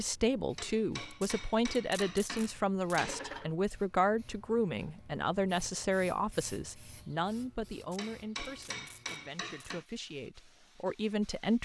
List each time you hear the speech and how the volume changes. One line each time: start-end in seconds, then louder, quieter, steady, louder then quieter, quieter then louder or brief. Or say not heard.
0.0-11.6 quieter.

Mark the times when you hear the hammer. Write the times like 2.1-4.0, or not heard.
0.6-3.5, 8.0-9.8.